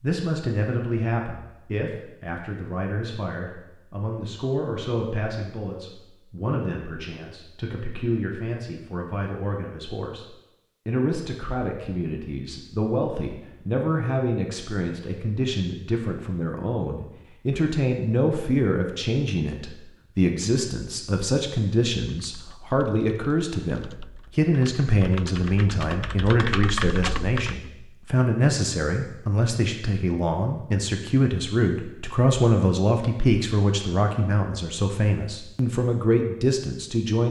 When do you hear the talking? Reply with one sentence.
You can hear the talking from 0.0 to 10.2 s and from 10.8 to 37.2 s.